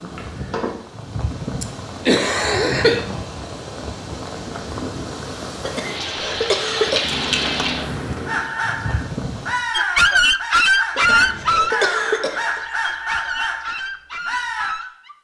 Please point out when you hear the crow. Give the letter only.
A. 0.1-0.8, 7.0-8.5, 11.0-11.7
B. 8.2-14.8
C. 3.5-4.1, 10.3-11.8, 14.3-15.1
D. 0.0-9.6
B.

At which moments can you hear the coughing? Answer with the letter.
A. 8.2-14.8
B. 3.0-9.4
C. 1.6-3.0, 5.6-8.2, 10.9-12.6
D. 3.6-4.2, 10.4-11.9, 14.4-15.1
C.